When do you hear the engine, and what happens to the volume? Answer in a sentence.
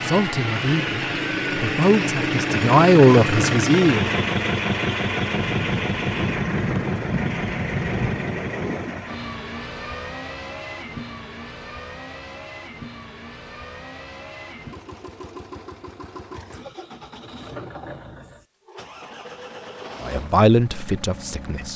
The engine can be heard from 0.0 to 21.7 s, getting quieter.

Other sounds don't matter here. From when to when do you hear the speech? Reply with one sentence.
The speech can be heard from 0.0 to 4.1 s and from 20.0 to 21.7 s.